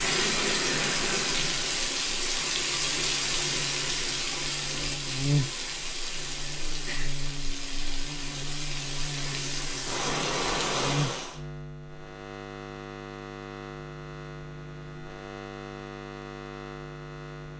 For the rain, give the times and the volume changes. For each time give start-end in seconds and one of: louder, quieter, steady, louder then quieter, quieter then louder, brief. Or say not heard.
0.0-11.4 quieter then louder.